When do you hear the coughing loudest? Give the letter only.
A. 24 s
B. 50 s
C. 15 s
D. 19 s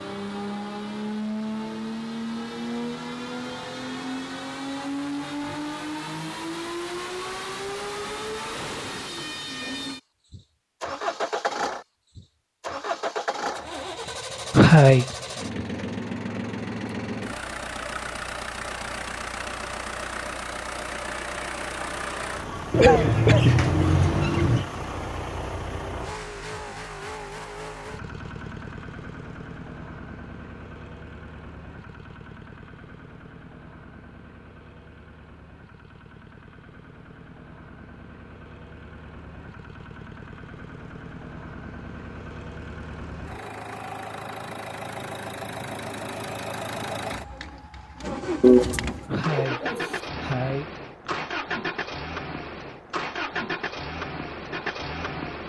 C.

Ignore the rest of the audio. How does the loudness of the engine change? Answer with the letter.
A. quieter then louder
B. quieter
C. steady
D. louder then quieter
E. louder
A.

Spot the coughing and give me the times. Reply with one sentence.
You can hear the coughing from 14.5 to 15.2 s, from 22.8 to 23.6 s and from 49.0 to 51.2 s.